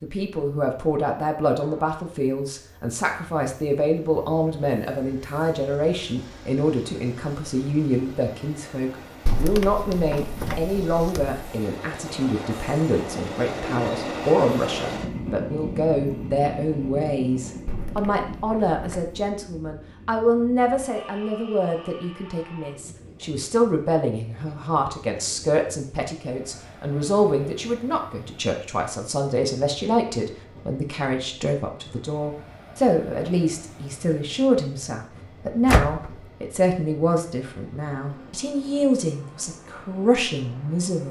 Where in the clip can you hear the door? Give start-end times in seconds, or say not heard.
9.2-11.4, 17.6-19.4, 35.6-36.1.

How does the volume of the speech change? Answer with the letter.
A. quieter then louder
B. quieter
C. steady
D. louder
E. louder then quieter
C.